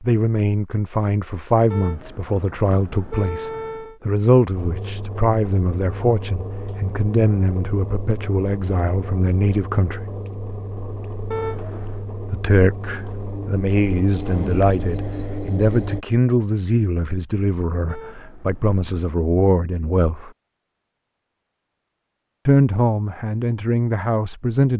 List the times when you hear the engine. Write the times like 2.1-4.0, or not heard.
4.5-16.1.